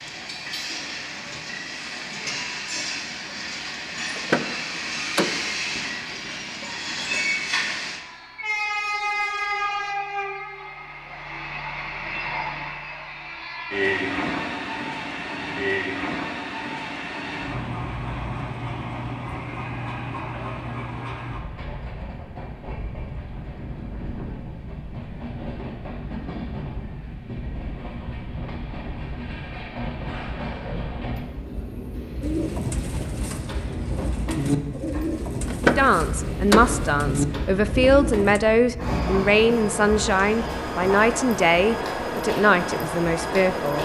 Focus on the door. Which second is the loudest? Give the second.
36 s.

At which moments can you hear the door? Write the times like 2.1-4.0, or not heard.
4.2-5.5, 35.5-36.9.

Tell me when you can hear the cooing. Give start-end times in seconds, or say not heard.
32.2-38.4.